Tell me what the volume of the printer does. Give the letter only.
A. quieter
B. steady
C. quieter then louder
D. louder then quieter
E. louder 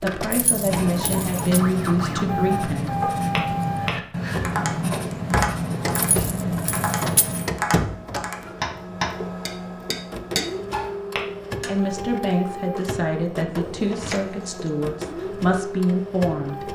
B.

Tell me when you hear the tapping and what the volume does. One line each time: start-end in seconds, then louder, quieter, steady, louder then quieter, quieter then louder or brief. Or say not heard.
2.5-11.7 steady.